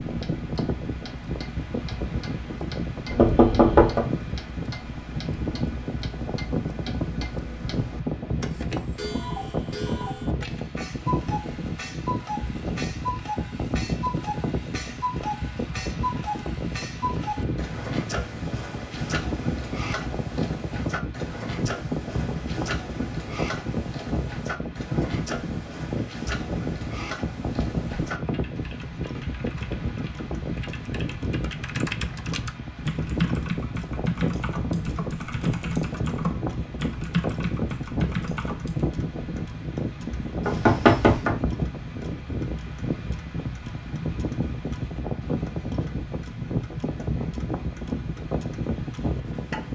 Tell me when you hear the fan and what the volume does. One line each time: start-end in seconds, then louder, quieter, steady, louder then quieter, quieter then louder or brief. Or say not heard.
0.0-49.7 steady.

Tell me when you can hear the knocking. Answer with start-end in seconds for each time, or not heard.
3.1-4.0, 40.5-41.4.